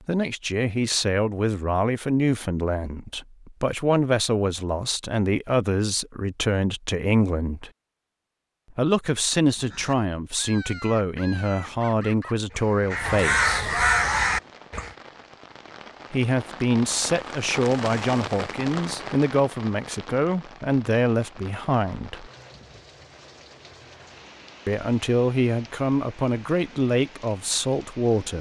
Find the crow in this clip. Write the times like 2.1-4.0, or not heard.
9.5-14.9.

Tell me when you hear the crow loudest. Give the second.
14 s.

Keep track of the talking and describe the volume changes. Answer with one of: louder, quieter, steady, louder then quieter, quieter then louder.
steady.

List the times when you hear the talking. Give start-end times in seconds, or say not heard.
0.1-7.7, 8.8-13.8, 16.1-22.3, 24.6-28.3.